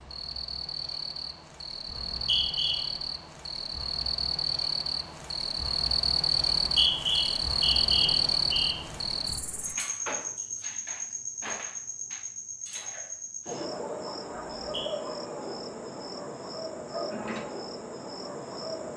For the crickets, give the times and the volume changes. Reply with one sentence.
The crickets can be heard from 0.0 to 18.9 s, getting louder then quieter.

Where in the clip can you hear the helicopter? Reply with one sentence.
The helicopter can't be heard in this clip.